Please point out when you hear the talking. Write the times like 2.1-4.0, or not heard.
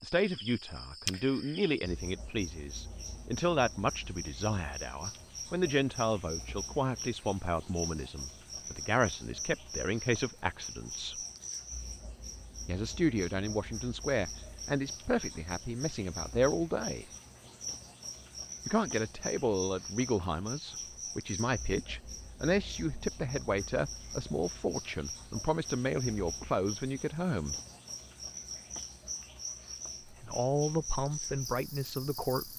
0.0-11.2, 12.7-17.1, 18.6-27.6, 30.1-32.5.